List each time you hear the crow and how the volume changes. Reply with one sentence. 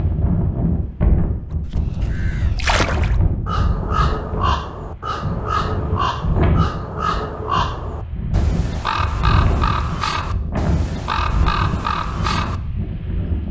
The crow can be heard from 1.5 to 12.6 s, at a steady volume.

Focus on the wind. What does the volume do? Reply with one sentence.
The volume of the wind stays about the same.